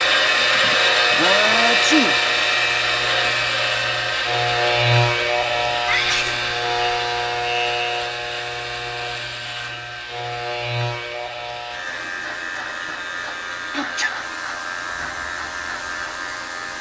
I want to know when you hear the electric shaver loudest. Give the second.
5 s.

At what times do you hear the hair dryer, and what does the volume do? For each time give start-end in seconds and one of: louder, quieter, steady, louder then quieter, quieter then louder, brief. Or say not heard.
0.0-16.7 quieter.